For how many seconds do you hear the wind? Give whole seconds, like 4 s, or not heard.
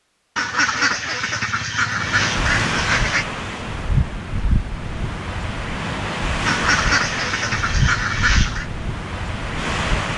8 s.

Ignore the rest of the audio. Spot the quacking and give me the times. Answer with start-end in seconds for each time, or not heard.
0.3-3.2, 6.5-8.7.